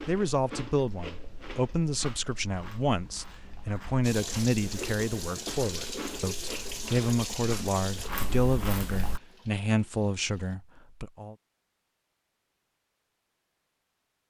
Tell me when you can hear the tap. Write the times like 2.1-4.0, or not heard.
4.0-10.6.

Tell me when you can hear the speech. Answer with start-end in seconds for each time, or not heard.
0.1-11.3.